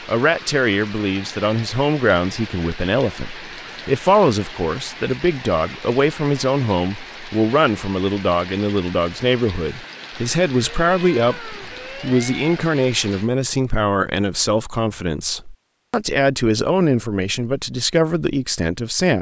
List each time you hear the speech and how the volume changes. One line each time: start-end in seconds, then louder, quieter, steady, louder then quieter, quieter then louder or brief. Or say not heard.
0.1-19.1 steady.